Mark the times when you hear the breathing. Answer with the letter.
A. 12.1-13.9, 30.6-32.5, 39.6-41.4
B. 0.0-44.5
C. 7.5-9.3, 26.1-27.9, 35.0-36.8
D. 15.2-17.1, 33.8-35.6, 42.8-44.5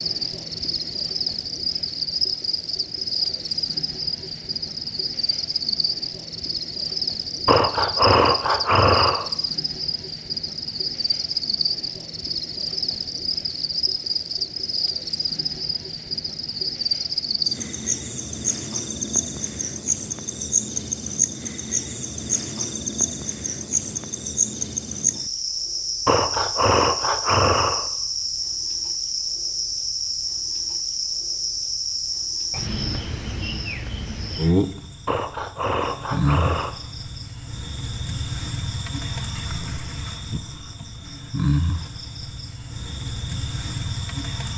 C.